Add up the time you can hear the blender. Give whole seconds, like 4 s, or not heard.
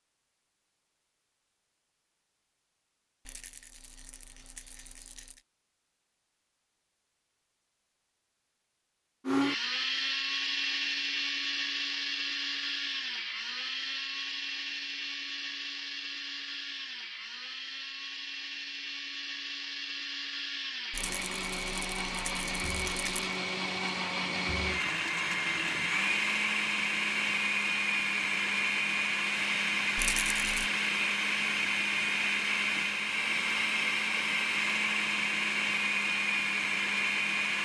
28 s.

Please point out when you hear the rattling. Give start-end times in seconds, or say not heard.
3.2-5.4, 20.9-23.4, 29.9-30.7.